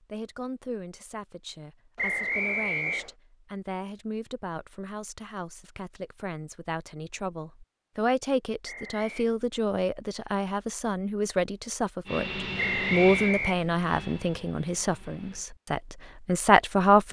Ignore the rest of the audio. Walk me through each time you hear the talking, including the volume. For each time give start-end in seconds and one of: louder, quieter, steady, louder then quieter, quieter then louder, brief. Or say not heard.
0.0-17.0 louder.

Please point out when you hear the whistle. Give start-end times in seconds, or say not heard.
1.9-3.1, 8.7-9.2, 12.6-13.6.